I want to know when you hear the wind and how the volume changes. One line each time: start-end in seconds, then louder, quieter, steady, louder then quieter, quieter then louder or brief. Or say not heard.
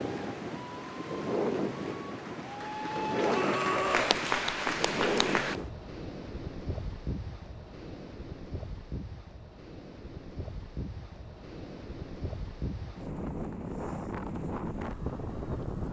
0.0-15.8 quieter then louder.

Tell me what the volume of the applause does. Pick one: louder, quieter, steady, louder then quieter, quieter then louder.
louder.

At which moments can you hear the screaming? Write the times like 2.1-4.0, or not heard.
3.1-4.2.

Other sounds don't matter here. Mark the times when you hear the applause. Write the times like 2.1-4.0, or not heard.
0.0-5.6.